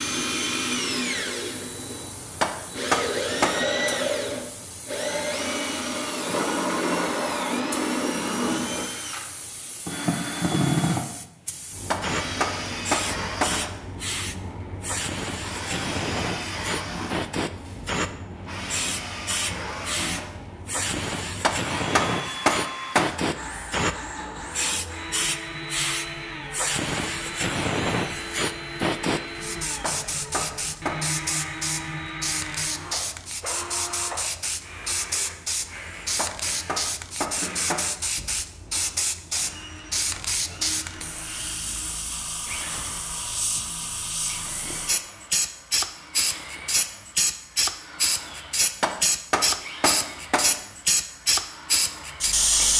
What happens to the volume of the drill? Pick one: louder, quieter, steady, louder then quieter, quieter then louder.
quieter.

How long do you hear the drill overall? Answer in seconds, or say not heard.
53 s.